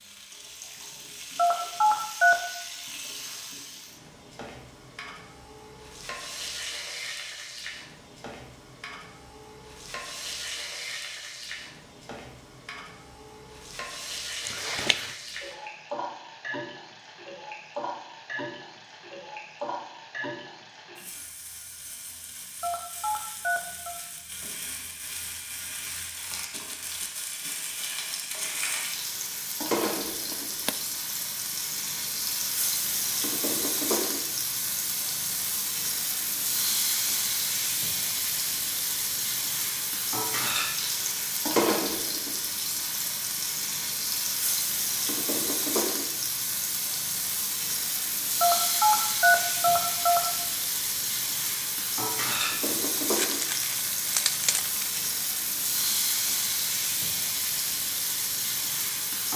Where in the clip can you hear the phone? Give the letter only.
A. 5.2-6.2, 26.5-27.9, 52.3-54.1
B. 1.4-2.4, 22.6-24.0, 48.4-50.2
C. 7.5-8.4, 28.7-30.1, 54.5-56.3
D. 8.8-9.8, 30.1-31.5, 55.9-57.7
B.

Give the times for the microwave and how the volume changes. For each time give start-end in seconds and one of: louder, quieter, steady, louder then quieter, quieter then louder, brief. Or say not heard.
not heard.